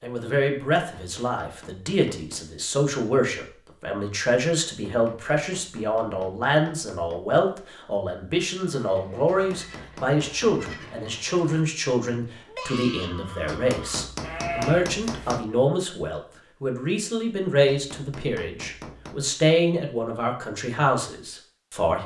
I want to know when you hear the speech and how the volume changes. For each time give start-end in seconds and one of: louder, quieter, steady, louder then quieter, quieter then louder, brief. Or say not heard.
0.0-22.0 steady.